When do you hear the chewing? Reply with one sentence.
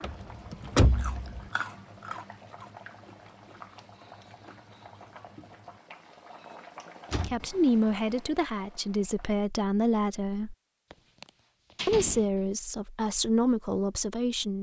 The chewing can be heard from 0.1 to 5.8 s.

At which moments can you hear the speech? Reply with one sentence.
The speech can be heard from 7.2 to 10.6 s and from 11.8 to 14.5 s.